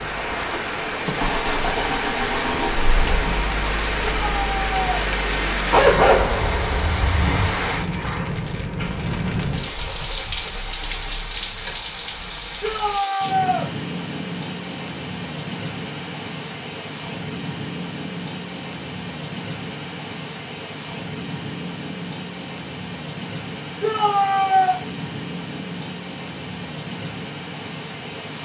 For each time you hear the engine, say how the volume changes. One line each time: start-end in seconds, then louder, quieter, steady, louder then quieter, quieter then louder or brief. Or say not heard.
0.0-12.9 quieter.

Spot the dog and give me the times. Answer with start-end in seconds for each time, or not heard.
5.7-7.3.